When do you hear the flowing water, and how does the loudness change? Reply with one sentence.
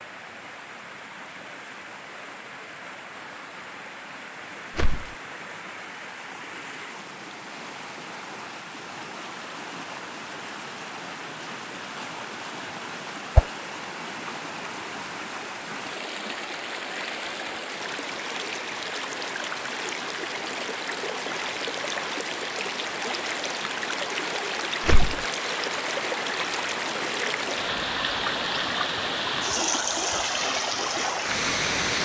The flowing water can be heard from 0.0 to 32.0 s, getting louder.